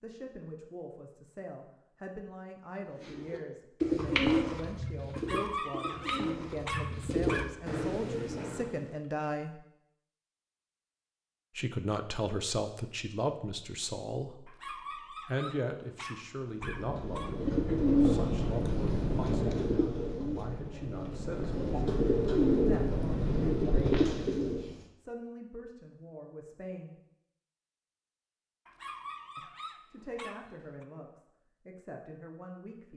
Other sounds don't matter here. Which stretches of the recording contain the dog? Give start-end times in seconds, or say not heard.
5.1-7.5, 14.4-17.4, 28.6-30.9.